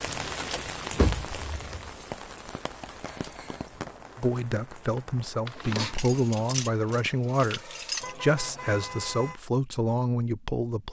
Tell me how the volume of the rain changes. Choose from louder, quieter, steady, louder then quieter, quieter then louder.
quieter.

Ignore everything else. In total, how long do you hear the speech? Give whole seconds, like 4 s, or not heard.
7 s.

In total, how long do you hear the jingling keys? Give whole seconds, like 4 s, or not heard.
4 s.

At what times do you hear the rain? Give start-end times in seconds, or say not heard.
0.0-7.2.